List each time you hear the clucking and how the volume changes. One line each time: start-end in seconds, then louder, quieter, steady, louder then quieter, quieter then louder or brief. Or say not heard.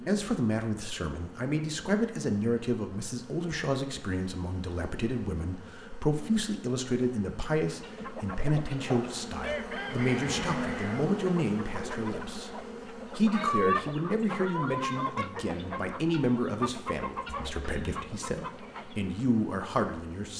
7.7-18.9 louder then quieter.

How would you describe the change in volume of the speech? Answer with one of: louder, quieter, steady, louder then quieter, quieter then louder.
steady.